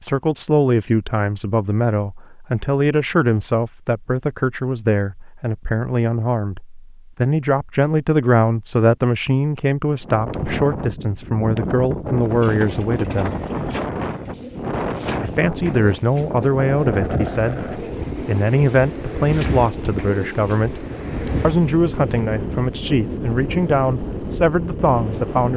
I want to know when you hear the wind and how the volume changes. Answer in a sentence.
The wind can be heard from 10.0 to 25.5 s, at a steady volume.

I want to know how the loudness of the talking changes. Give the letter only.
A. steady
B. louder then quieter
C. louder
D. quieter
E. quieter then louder
A.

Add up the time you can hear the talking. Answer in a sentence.
You can hear the talking for 24 seconds altogether.